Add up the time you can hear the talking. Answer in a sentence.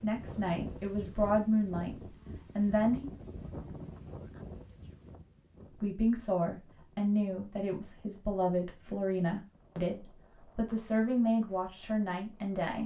The talking can be heard for 10 seconds in total.